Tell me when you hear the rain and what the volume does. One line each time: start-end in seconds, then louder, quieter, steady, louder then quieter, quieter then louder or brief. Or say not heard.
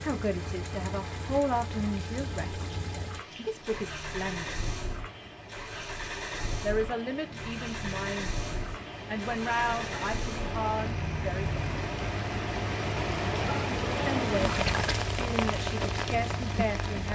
0.2-17.0 louder.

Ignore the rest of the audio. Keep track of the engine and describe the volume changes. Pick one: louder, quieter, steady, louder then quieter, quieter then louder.
steady.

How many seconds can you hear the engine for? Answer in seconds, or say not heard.
17 s.